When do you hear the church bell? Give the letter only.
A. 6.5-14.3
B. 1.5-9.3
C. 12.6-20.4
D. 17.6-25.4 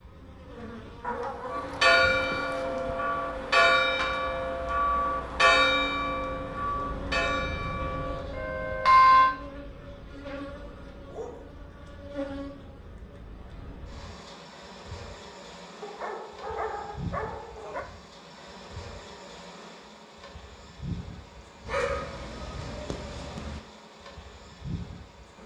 B.